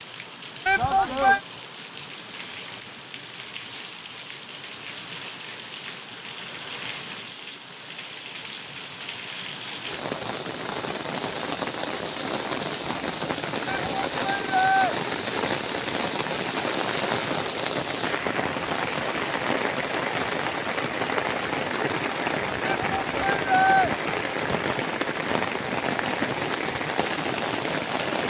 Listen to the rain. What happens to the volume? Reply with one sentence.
The volume of the rain goes up.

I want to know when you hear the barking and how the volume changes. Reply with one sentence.
The barking can't be heard in this clip.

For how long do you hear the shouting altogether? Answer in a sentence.
The shouting can be heard for 3 seconds in total.